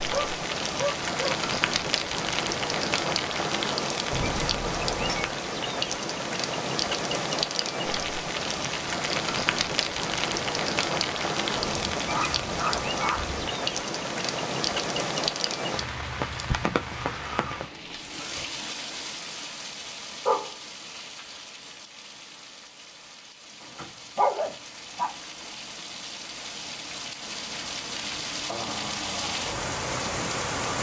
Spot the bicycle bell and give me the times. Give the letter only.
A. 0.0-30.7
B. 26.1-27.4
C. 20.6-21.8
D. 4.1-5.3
D.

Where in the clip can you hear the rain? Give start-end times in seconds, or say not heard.
0.0-30.7.